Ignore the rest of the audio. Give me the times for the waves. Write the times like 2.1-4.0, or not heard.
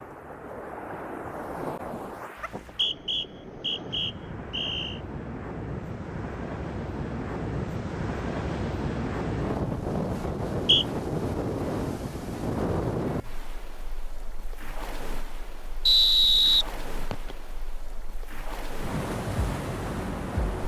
0.0-20.6.